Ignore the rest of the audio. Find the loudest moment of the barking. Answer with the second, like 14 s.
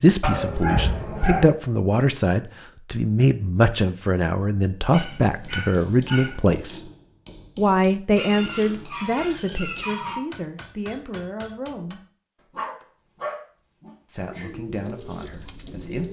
1 s.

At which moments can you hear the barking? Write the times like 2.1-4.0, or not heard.
0.2-1.4, 4.9-6.4, 8.2-10.2, 12.5-14.5.